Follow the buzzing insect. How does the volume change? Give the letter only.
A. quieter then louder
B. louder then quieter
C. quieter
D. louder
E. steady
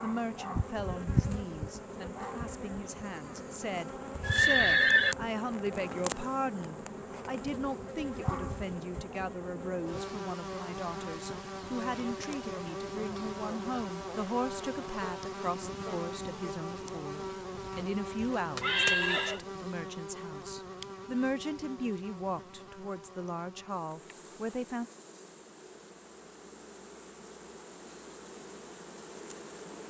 C.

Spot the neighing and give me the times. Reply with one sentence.
You can hear the neighing from 4.2 to 5.2 s and from 17.6 to 19.4 s.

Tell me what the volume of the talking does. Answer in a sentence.
The volume of the talking stays about the same.